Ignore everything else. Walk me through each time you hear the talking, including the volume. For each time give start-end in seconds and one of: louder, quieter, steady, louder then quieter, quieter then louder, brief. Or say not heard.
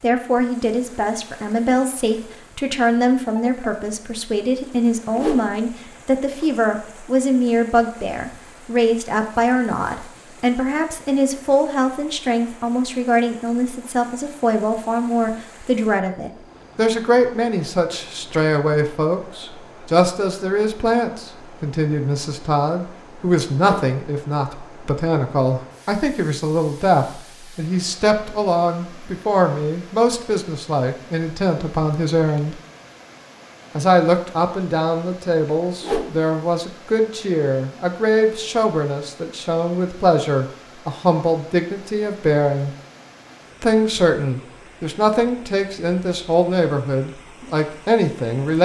0.0-32.5 steady
33.8-42.7 steady
43.6-48.6 steady.